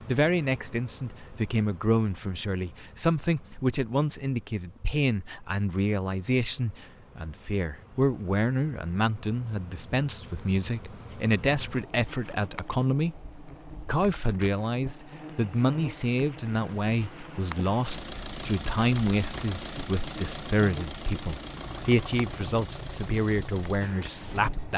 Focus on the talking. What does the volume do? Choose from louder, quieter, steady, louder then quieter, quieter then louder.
steady.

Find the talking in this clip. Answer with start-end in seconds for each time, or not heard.
0.1-13.2, 13.8-24.7.